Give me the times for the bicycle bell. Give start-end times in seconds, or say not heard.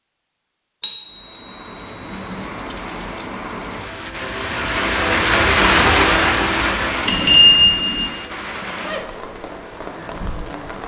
0.8-2.4, 7.0-8.1.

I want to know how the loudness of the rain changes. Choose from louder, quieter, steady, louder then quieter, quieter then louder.
louder then quieter.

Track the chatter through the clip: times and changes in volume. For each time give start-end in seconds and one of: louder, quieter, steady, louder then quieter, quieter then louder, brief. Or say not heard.
not heard.